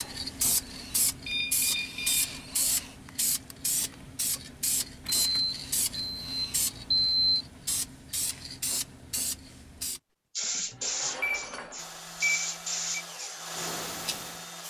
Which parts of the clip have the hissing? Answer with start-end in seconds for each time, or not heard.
0.0-14.6.